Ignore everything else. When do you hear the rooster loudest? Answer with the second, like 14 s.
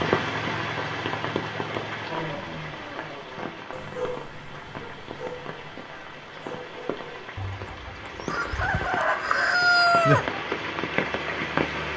10 s.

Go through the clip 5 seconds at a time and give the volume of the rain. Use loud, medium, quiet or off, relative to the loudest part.
loud, medium, loud.